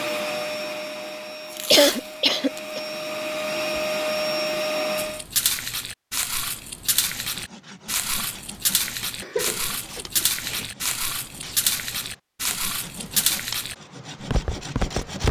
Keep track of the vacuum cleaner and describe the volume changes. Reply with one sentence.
The loudness of the vacuum cleaner goes down, then up.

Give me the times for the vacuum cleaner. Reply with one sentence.
You can hear the vacuum cleaner from 0.0 to 5.2 s.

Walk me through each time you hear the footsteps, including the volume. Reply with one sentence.
The footsteps can be heard from 5.0 to 15.2 s, at a steady volume.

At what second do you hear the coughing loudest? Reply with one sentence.
The volume of the coughing peaks at 2 seconds.